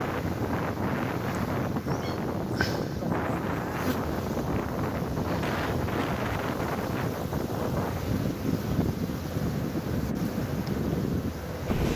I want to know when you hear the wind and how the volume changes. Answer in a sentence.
The wind can be heard from 0.0 to 11.9 s, at a steady volume.